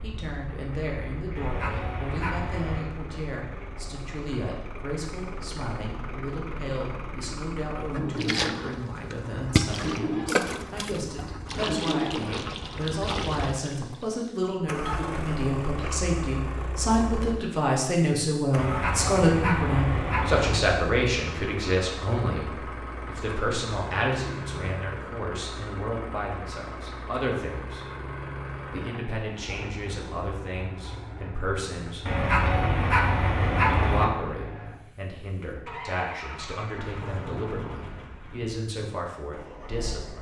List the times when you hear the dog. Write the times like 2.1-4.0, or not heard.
1.4-2.9, 18.6-20.6, 32.0-34.0.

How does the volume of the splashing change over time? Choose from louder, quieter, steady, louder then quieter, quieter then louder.
quieter.